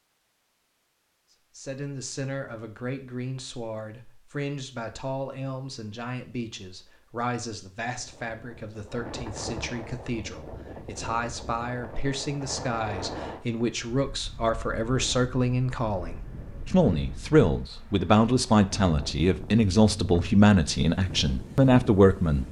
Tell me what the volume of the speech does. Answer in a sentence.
The loudness of the speech goes up.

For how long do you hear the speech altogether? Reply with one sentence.
The speech can be heard for 21 seconds in total.